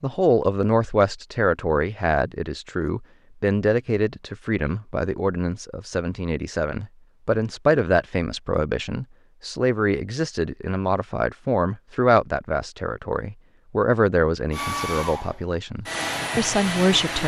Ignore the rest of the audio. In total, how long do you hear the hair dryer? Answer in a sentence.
You can hear the hair dryer for 3 seconds altogether.